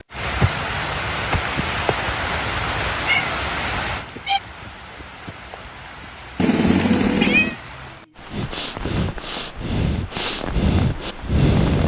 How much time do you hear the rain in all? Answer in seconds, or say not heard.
12 s.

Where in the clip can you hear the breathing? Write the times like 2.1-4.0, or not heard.
8.2-11.8.